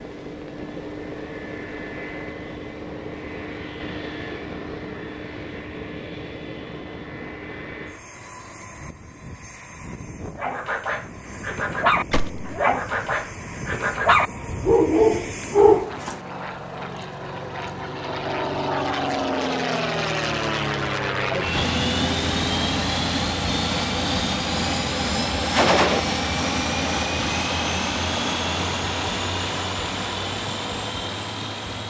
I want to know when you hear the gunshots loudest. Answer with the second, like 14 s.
26 s.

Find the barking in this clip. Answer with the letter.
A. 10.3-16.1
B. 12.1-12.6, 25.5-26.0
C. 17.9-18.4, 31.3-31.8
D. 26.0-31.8
A.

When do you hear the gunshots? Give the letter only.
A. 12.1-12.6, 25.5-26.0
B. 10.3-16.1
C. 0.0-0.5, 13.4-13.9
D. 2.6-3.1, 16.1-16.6
A.